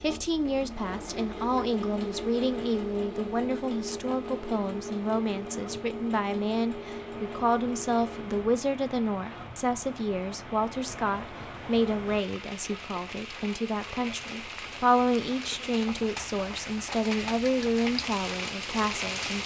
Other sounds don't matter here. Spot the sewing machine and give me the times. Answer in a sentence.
You can hear the sewing machine from 0.0 to 8.4 s.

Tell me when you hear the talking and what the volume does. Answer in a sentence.
You can hear the talking from 0.0 to 19.4 s, at a steady volume.